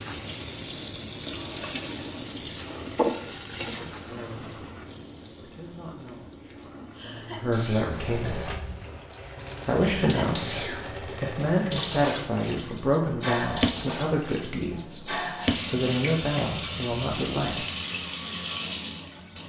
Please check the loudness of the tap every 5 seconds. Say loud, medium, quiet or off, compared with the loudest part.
loud, medium, loud, loud.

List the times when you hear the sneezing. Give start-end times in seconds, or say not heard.
7.0-8.0, 9.8-10.8.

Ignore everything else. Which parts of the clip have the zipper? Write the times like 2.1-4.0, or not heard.
not heard.